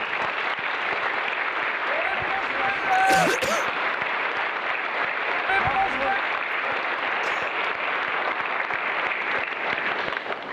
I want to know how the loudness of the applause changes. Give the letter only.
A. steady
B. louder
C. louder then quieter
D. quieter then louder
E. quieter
A.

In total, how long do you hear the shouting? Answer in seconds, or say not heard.
2 s.